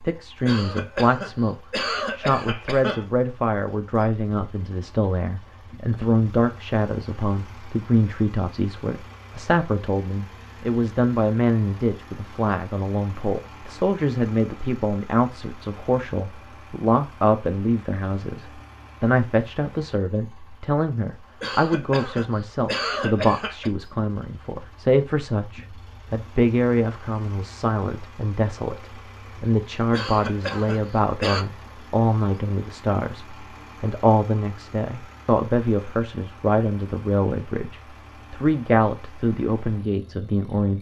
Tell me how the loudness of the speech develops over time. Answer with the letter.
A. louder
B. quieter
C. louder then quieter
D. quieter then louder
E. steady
E.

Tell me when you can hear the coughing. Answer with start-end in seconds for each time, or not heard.
0.5-3.0, 21.4-23.7, 29.9-31.4.